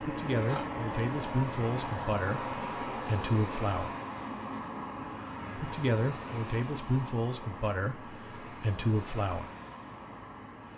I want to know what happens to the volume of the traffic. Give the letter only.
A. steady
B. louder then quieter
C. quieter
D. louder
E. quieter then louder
C.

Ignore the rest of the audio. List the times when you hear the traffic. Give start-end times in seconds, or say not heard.
0.0-10.7.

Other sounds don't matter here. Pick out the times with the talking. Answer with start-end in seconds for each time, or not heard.
0.0-4.0, 5.5-9.5.